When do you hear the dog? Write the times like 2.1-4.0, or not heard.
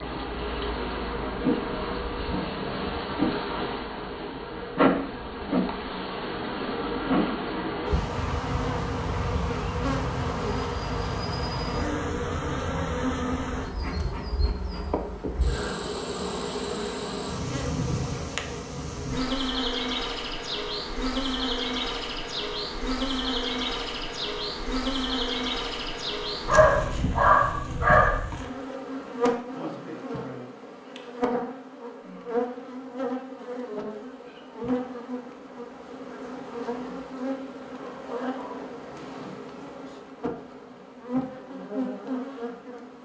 26.4-28.2.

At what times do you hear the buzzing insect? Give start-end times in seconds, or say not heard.
0.0-42.9.